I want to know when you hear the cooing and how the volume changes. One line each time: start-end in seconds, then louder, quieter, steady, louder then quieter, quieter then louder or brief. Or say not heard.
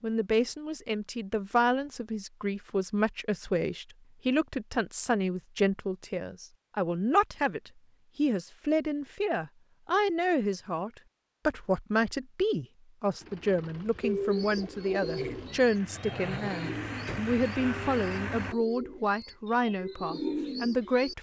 14.0-21.1 quieter then louder.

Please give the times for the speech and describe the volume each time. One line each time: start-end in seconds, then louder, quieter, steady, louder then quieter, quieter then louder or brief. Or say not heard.
0.0-21.1 steady.